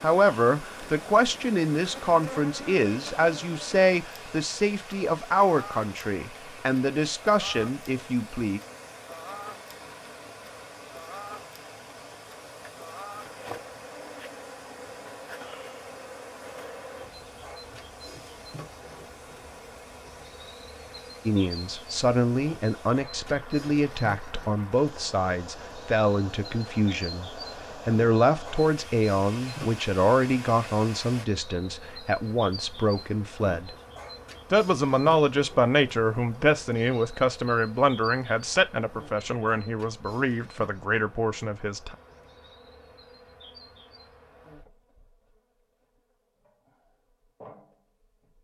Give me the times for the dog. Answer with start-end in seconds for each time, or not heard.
not heard.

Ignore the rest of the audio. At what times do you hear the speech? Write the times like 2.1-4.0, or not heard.
0.0-8.6, 21.2-33.8, 34.5-42.0.